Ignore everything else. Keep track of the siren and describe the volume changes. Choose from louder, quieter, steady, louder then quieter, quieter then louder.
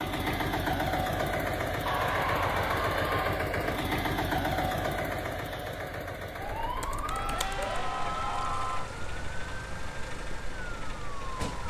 quieter.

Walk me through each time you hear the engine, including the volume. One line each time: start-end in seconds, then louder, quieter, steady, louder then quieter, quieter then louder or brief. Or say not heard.
0.0-11.6 quieter.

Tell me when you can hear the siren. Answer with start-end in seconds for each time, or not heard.
6.3-11.6.